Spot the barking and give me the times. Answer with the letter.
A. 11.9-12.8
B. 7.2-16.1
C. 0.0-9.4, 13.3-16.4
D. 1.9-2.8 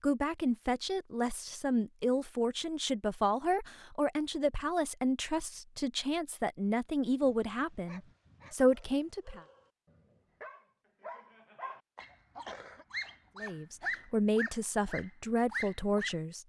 B.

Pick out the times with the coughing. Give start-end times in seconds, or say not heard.
11.9-12.8.